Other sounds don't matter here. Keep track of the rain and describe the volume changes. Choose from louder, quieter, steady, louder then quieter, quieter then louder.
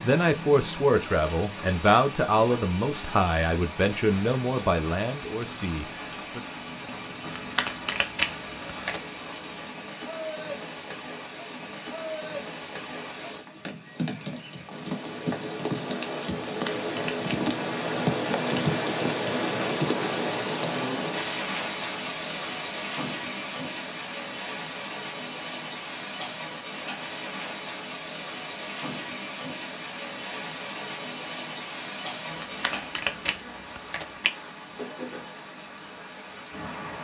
louder then quieter.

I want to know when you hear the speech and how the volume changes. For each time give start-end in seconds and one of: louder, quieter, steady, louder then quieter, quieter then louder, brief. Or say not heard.
0.0-6.4 quieter.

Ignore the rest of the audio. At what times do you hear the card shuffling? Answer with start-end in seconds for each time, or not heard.
7.2-9.0, 16.4-17.4, 32.3-34.3.